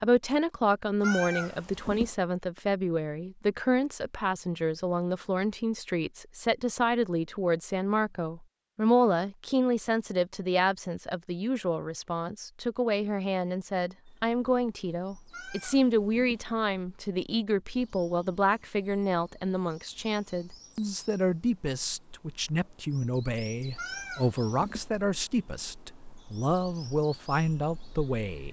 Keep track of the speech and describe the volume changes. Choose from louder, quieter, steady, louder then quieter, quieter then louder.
steady.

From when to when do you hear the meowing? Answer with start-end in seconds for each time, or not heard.
1.0-2.1, 15.3-16.4, 23.8-24.9.